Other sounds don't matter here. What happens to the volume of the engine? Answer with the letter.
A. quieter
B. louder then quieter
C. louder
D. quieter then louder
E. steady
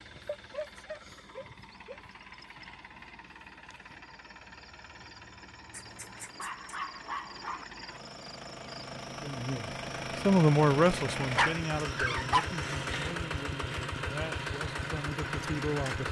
C.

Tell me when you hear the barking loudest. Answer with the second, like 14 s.
12 s.